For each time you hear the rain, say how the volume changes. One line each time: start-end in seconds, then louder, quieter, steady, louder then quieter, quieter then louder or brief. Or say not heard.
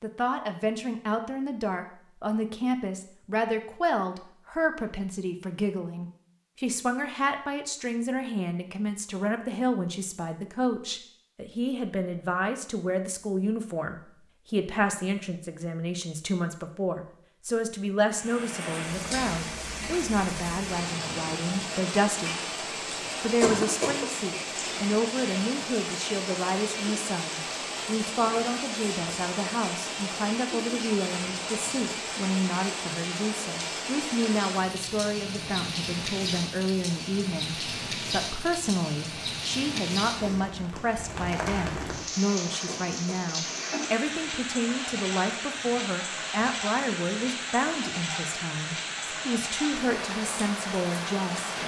18.1-51.6 steady.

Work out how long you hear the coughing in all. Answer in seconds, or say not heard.
2 s.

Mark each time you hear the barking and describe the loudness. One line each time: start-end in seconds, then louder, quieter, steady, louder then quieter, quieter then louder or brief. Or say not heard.
not heard.